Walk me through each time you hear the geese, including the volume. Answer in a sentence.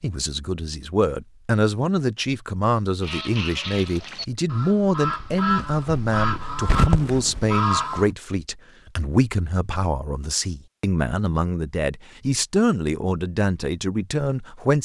You can hear the geese from 3.0 to 8.1 s, getting louder.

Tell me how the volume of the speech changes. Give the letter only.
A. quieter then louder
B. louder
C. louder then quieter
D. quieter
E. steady
E.